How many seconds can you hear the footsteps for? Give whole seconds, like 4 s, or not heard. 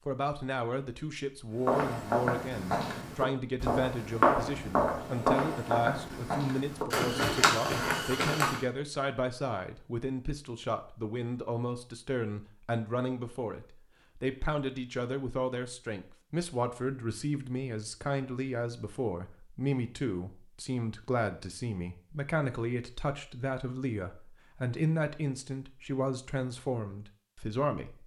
7 s.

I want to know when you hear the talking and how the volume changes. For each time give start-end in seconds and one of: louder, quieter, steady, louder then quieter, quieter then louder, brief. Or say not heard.
0.1-28.0 steady.